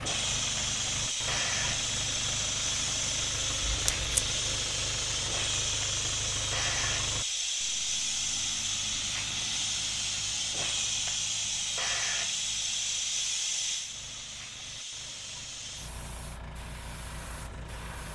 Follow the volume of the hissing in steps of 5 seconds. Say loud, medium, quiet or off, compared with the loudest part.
loud, loud, loud, quiet.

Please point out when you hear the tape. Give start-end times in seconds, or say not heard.
3.6-4.3.